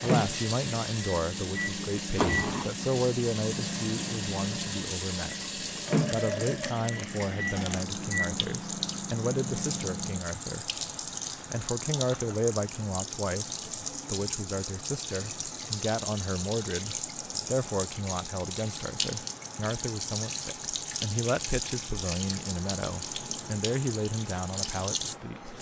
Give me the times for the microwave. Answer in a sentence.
The microwave can be heard from 0.0 to 10.2 s.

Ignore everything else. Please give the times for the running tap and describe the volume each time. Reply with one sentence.
You can hear the running tap from 0.0 to 25.5 s, at a steady volume.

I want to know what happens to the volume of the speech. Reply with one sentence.
The loudness of the speech stays about the same.